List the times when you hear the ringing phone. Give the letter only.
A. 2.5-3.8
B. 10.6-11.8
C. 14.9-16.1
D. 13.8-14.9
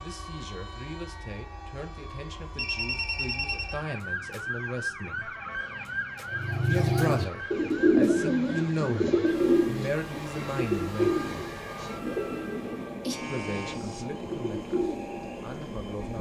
A.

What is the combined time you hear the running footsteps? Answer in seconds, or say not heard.
not heard.